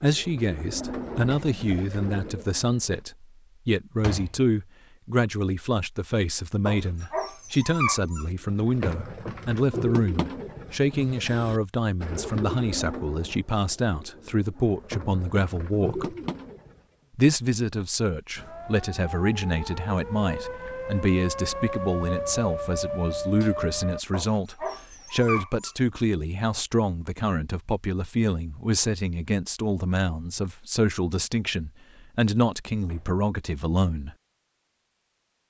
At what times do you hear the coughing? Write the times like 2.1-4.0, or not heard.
not heard.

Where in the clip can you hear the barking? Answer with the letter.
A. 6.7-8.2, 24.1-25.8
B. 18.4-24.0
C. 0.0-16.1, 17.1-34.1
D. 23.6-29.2
A.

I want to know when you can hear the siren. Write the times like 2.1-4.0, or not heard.
18.4-24.0.